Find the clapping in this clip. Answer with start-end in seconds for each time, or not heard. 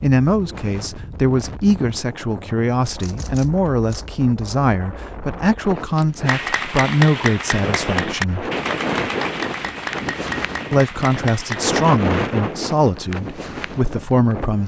6.2-12.0.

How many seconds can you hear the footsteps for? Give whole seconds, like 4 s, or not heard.
not heard.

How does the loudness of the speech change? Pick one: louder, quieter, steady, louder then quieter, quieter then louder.
steady.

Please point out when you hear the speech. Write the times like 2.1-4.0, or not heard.
0.0-8.5, 10.7-14.6.